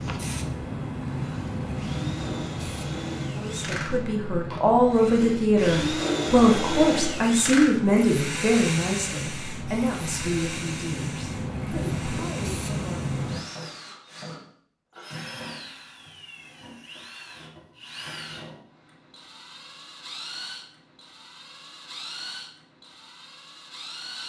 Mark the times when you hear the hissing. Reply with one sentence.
You can hear the hissing from 0.0 to 13.4 s.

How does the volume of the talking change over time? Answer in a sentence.
The volume of the talking goes down.